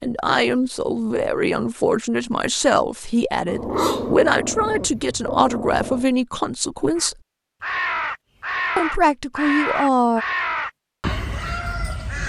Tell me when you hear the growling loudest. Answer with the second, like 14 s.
4 s.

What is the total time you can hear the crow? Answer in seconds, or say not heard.
5 s.